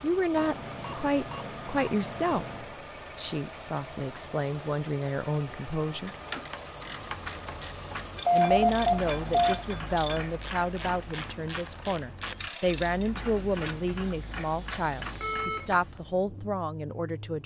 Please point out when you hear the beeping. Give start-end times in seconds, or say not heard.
0.3-2.8, 8.2-9.6, 15.1-15.7.